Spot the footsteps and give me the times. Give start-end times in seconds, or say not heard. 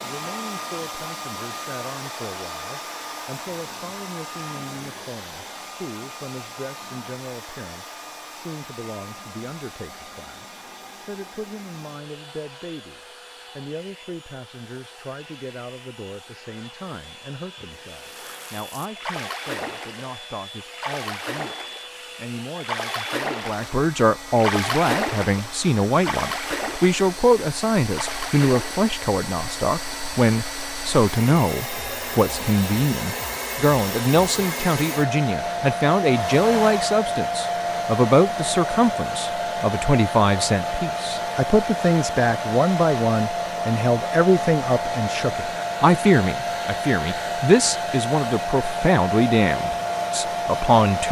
not heard.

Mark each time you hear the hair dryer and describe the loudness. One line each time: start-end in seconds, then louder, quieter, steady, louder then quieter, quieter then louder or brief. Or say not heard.
0.0-51.0 quieter then louder.